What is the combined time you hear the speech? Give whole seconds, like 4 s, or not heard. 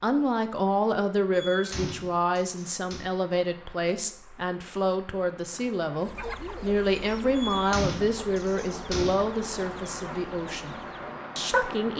11 s.